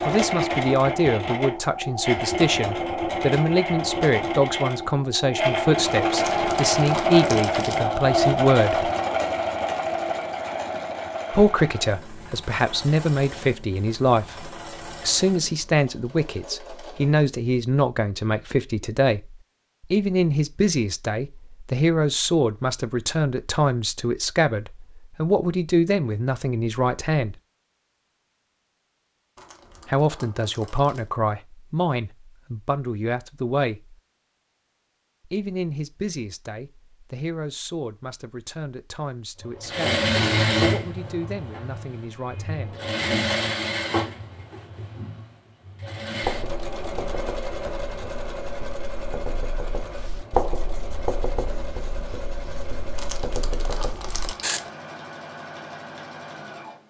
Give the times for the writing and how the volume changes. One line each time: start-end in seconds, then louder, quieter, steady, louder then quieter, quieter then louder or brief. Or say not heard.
46.2-54.6 louder then quieter.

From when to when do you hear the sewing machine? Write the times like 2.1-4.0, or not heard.
0.0-17.3, 39.4-56.8.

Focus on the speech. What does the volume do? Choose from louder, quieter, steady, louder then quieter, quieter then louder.
quieter.